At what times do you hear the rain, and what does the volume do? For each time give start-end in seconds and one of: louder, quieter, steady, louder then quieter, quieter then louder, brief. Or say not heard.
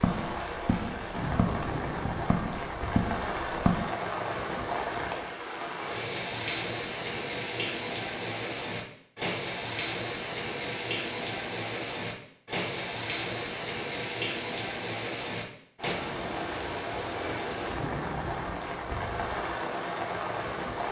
0.0-20.8 steady.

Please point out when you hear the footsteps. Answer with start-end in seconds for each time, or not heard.
0.0-3.9.